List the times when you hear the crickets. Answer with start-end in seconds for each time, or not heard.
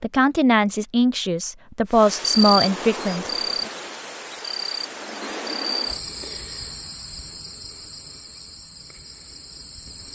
1.9-10.0.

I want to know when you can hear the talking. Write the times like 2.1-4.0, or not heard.
0.0-3.7.